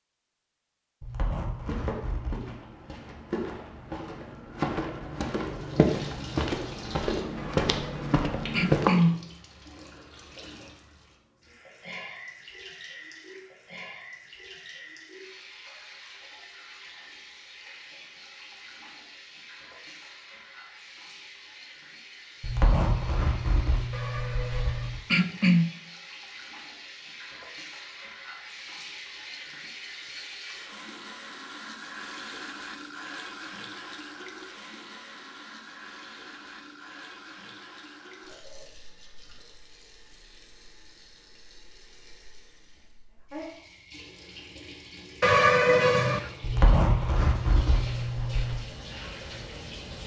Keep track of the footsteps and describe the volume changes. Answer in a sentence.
The volume of the footsteps goes up.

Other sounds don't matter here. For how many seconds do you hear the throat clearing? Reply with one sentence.
You can hear the throat clearing for 5 seconds altogether.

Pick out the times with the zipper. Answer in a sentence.
The zipper can be heard from 1.0 to 2.5 s, from 22.4 to 25.0 s and from 46.4 to 48.6 s.